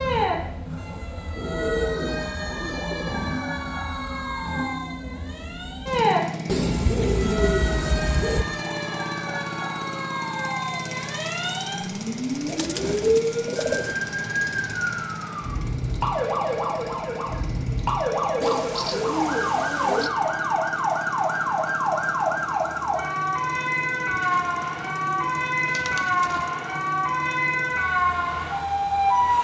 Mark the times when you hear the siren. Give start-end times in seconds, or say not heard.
0.0-29.3.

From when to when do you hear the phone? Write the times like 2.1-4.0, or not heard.
not heard.